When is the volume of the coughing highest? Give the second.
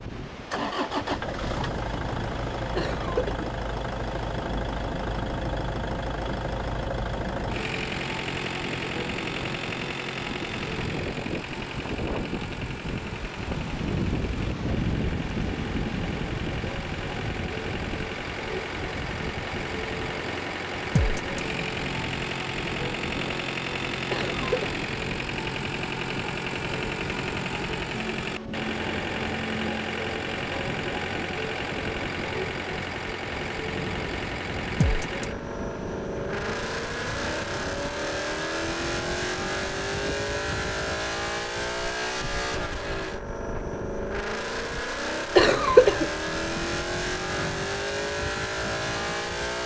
46 s.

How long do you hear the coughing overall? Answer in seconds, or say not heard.
2 s.